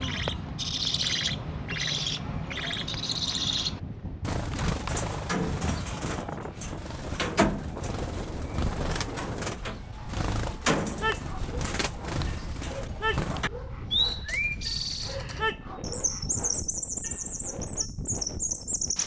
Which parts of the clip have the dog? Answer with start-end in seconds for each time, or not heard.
10.8-17.9.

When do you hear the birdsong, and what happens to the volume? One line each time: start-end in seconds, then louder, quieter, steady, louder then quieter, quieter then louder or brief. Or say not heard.
0.0-19.0 steady.